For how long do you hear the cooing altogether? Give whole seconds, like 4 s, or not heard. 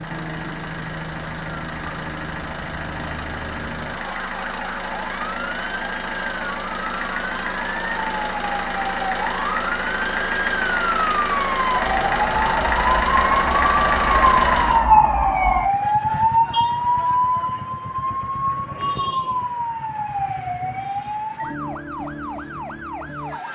not heard.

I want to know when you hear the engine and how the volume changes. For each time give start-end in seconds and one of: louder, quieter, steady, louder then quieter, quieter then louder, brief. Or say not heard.
0.0-14.8 louder.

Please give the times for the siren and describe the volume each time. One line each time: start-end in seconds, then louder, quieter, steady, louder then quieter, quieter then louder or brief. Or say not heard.
0.0-23.5 louder then quieter.